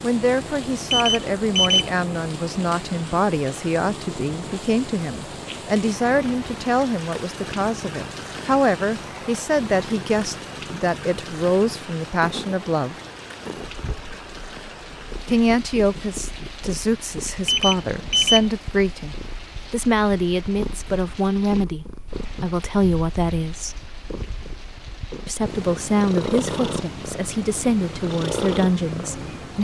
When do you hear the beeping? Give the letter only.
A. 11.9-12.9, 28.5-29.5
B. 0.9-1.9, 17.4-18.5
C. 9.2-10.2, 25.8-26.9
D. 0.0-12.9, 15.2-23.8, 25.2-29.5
B.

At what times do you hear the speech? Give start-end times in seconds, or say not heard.
0.0-12.9, 15.2-23.8, 25.2-29.5.